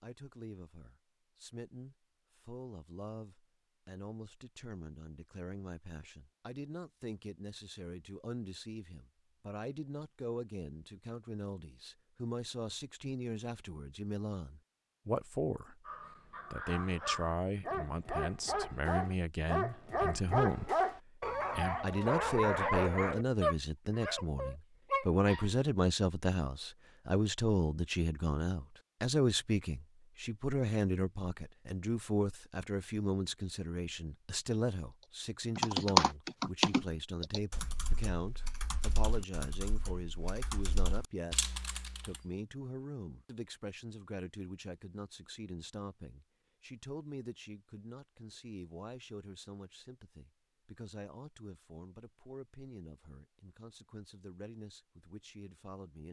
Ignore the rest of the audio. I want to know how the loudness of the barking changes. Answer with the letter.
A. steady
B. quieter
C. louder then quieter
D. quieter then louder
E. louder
E.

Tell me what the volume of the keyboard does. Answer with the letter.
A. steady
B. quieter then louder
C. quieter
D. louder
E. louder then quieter
B.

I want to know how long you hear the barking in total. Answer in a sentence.
You can hear the barking for 10 seconds altogether.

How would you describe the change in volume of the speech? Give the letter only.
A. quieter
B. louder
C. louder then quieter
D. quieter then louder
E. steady
C.